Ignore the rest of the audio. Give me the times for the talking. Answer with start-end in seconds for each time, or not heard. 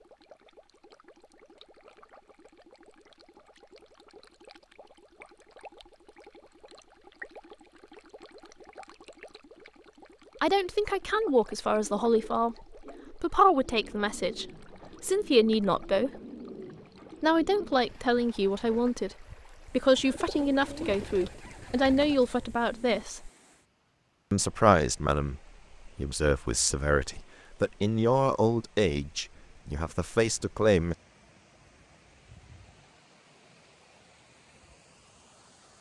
10.4-16.1, 17.2-23.3, 24.3-30.9.